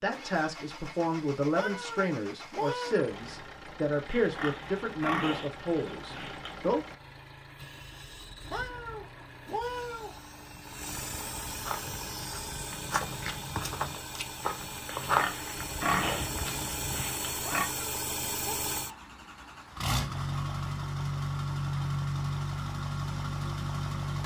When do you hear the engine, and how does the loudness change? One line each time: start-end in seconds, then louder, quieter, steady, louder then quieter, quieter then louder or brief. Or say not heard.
0.0-24.2 louder.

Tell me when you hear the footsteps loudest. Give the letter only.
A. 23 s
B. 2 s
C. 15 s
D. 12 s
C.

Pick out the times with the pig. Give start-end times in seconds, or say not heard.
4.1-6.5, 14.9-17.6.